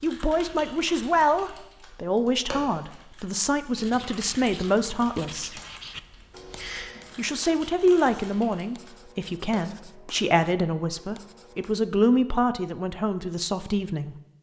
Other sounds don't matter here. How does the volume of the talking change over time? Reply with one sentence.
The volume of the talking stays about the same.